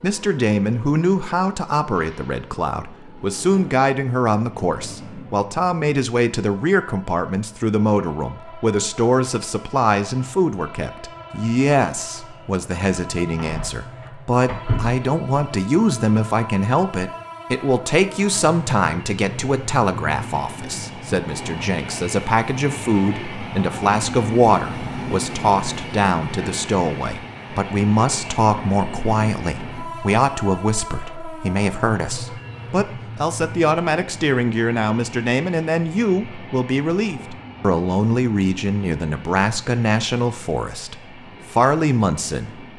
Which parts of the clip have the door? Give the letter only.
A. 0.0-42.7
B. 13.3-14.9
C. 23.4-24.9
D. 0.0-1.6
B.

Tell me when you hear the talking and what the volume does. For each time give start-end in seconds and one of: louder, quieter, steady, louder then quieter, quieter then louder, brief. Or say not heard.
0.0-42.7 steady.